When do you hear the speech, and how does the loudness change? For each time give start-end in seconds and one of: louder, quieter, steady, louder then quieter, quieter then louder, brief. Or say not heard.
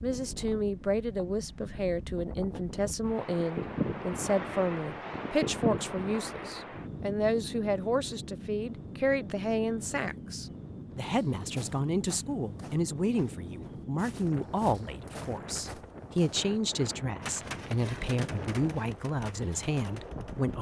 0.0-20.5 steady.